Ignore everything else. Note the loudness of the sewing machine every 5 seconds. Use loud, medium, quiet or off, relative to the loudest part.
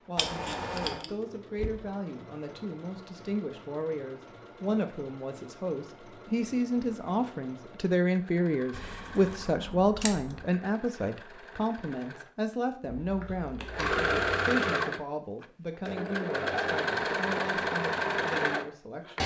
quiet, quiet, loud, loud.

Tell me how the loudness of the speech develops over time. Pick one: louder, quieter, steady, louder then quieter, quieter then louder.
louder then quieter.